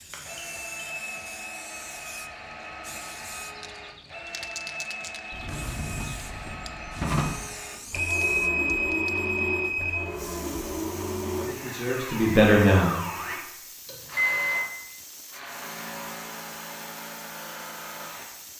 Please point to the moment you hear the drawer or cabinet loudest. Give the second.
7 s.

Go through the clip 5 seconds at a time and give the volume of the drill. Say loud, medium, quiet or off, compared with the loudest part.
medium, loud, loud, medium.